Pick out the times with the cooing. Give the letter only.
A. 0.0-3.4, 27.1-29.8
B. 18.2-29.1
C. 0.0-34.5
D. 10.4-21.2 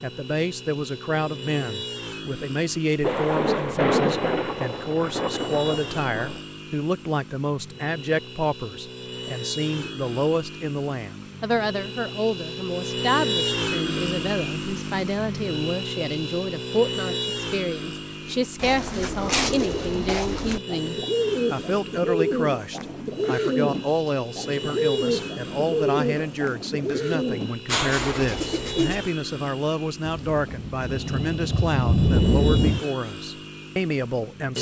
B.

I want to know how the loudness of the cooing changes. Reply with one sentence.
The volume of the cooing stays about the same.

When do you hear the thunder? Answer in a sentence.
You can hear the thunder from 3.0 to 6.4 s and from 30.1 to 32.8 s.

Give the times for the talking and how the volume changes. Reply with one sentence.
The talking can be heard from 0.0 to 34.5 s, at a steady volume.